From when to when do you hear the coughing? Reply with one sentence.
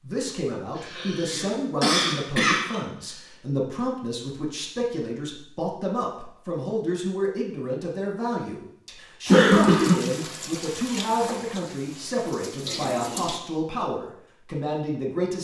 You can hear the coughing from 0.8 to 2.8 s and from 9.2 to 9.9 s.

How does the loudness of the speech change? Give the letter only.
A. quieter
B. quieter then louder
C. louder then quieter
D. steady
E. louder
D.